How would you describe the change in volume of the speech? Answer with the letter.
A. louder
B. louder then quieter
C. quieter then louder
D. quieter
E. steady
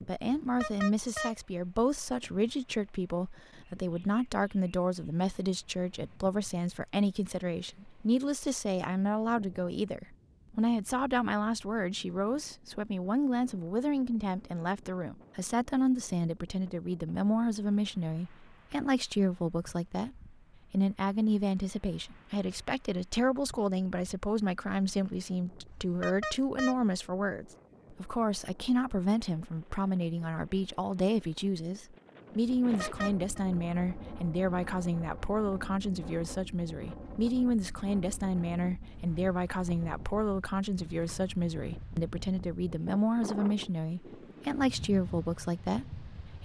E.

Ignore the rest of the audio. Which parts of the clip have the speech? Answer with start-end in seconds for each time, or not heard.
0.1-46.4.